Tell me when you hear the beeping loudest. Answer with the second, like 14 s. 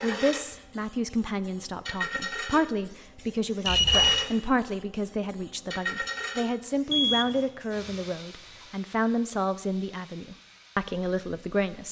4 s.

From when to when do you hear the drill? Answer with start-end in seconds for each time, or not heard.
not heard.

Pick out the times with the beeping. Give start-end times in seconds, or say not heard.
3.6-4.2, 6.9-7.5.